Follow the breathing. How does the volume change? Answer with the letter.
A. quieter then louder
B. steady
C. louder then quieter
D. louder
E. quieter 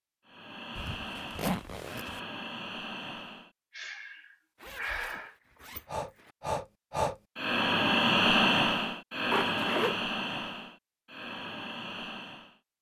C.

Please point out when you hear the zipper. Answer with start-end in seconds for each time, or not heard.
0.8-2.2, 4.6-6.3, 9.3-10.0.